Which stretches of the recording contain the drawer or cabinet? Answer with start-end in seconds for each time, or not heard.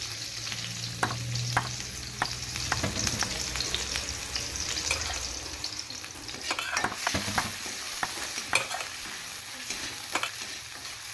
2.8-3.2, 7.1-7.6.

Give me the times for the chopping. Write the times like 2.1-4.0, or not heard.
1.0-3.8, 6.8-8.7.